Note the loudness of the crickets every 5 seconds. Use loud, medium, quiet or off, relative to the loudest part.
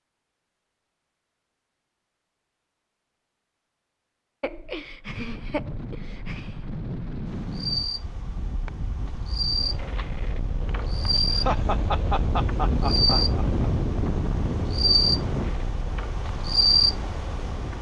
off, medium, loud, loud.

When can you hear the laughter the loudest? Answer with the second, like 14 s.
12 s.